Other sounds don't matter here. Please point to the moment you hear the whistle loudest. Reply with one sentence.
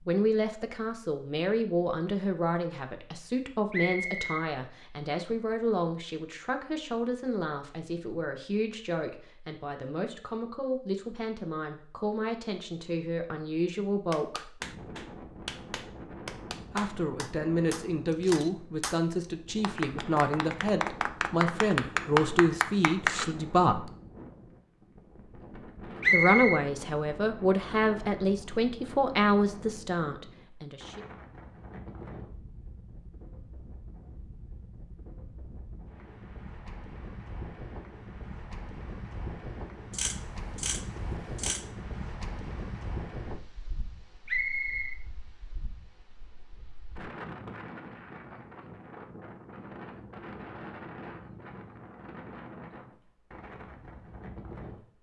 The volume of the whistle peaks at 26 seconds.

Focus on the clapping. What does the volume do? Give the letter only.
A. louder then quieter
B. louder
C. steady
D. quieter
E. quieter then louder
B.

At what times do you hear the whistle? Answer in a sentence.
You can hear the whistle from 3.7 to 4.3 s, from 26.0 to 26.6 s and from 44.2 to 45.0 s.